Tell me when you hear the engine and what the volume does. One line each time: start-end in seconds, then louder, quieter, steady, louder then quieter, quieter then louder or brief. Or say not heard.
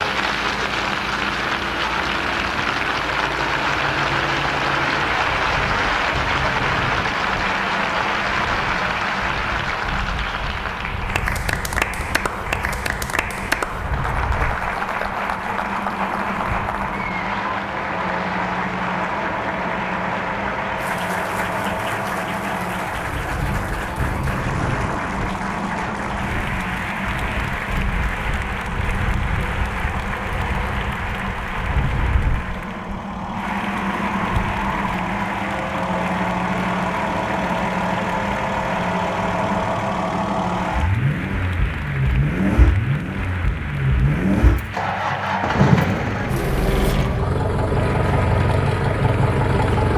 0.0-49.9 louder.